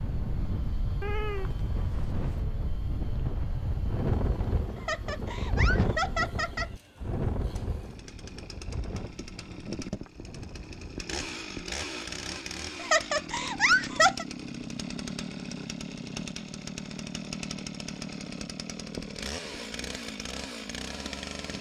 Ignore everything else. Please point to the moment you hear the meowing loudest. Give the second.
1 s.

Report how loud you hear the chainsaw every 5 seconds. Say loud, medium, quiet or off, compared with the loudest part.
quiet, medium, loud, loud, loud.